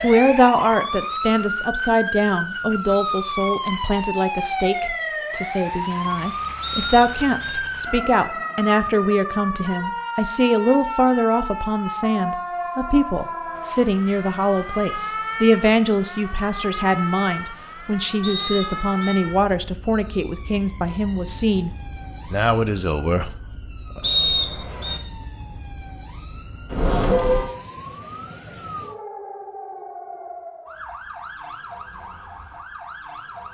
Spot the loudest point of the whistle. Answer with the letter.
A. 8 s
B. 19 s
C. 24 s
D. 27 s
C.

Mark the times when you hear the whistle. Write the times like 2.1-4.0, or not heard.
6.6-7.6, 18.2-19.2, 24.0-25.0.